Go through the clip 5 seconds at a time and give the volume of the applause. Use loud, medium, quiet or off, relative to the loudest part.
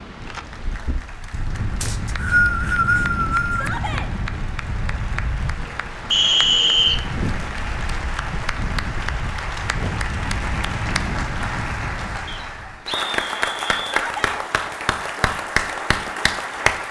quiet, medium, loud, loud.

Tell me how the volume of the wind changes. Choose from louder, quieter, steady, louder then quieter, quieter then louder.
steady.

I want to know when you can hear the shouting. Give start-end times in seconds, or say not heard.
3.5-4.1, 13.8-14.4.